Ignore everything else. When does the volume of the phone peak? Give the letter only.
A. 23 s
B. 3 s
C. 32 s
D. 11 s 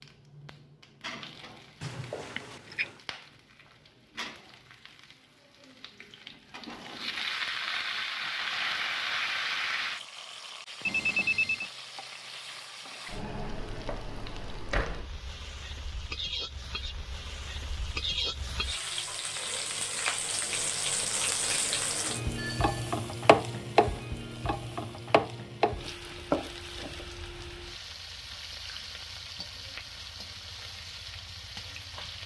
D.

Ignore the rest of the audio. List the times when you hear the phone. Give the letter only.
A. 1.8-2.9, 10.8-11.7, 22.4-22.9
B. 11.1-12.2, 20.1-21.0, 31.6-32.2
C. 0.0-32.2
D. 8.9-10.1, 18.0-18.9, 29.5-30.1
A.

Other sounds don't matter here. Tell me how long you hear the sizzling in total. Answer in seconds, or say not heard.
32 s.